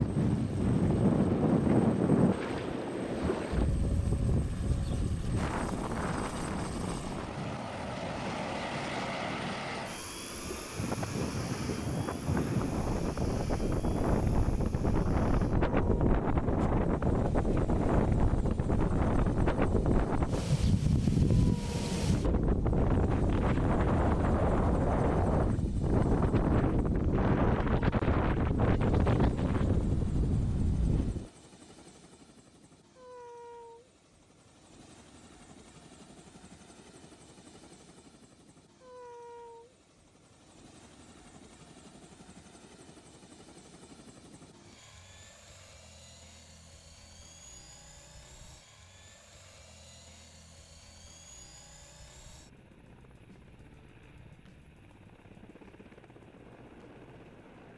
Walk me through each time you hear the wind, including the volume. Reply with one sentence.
The wind can be heard from 0.0 to 31.3 s, getting quieter then louder.